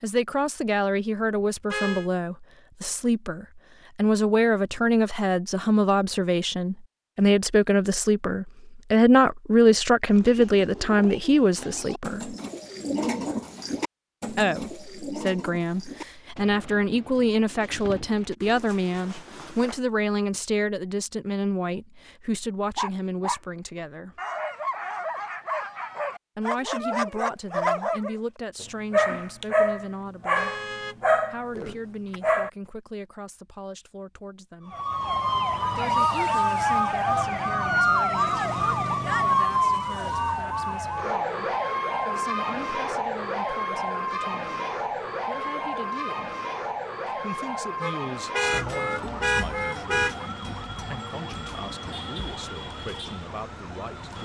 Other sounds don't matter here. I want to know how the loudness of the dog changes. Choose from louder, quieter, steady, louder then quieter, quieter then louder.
louder.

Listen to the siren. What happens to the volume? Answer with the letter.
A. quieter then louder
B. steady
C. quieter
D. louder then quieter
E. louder
C.